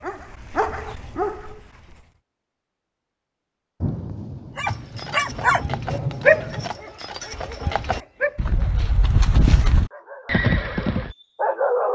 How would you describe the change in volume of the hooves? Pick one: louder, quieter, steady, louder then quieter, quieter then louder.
louder.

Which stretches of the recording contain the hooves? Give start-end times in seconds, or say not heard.
4.7-11.2.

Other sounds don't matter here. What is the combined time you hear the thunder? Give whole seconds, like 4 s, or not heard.
3 s.